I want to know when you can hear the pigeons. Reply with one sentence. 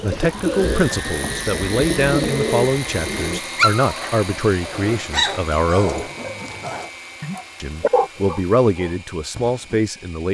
The pigeons can be heard from 0.0 to 3.4 s.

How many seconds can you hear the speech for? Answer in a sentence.
The speech can be heard for 9 seconds in total.